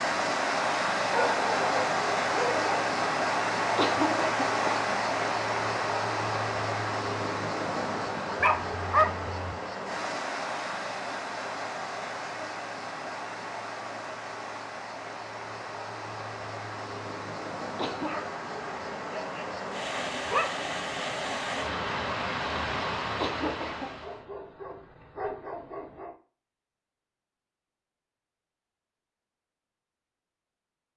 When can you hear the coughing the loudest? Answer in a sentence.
The loudest moment of the coughing is at 4 seconds.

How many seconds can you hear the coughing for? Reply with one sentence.
You can hear the coughing for 2 seconds altogether.